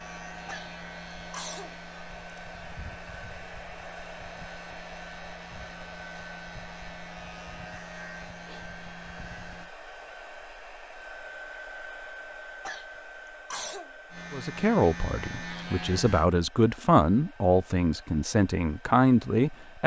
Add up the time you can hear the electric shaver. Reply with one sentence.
The electric shaver can be heard for 12 seconds in total.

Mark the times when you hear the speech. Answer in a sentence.
You can hear the speech from 14.3 to 19.8 s.